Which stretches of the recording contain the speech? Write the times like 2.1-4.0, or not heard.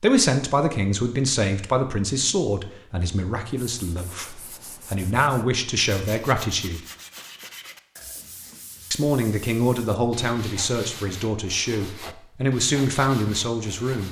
0.0-6.8, 8.9-14.0.